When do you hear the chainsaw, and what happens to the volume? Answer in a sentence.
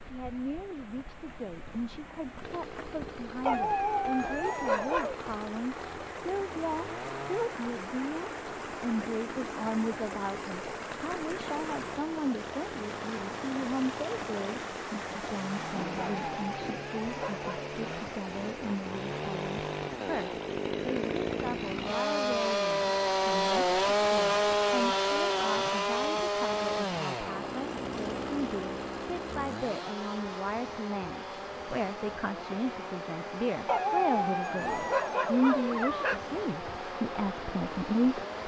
You can hear the chainsaw from 2.4 to 38.4 s, getting louder then quieter.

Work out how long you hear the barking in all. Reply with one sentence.
You can hear the barking for 6 seconds altogether.